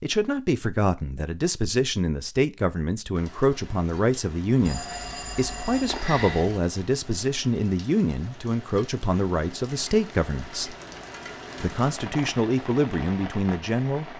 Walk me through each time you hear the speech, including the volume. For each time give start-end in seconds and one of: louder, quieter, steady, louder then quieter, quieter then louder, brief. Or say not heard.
0.0-10.8 steady
11.6-14.1 brief.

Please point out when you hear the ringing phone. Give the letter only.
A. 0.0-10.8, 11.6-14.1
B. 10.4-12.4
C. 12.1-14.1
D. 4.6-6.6
D.